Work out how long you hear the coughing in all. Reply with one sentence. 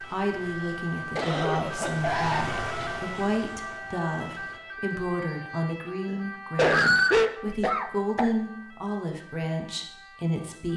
The coughing can be heard for 4 seconds in total.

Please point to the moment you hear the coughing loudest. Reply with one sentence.
The loudest moment of the coughing is at 7 seconds.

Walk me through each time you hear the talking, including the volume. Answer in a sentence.
You can hear the talking from 0.1 to 10.7 s, at a steady volume.